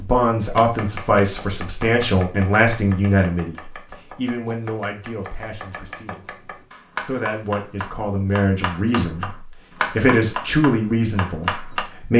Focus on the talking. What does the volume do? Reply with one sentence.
The volume of the talking goes down, then up.